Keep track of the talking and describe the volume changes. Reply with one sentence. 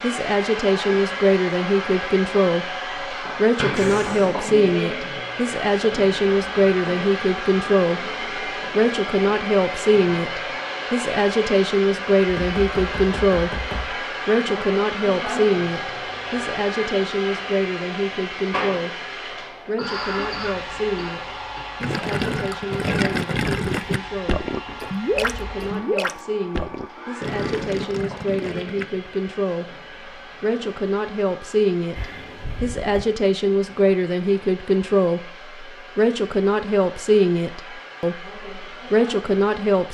The loudness of the talking goes down, then up.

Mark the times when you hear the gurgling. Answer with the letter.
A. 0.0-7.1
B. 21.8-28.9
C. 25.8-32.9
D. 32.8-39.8
B.